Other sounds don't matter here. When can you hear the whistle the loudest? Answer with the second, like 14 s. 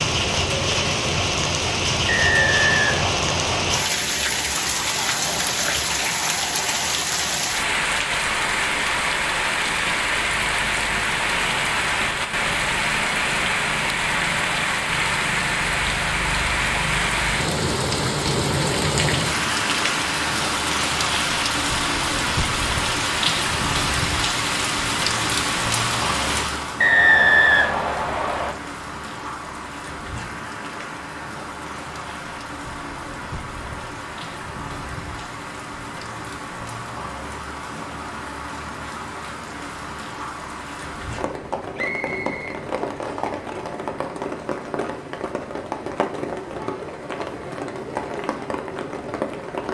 27 s.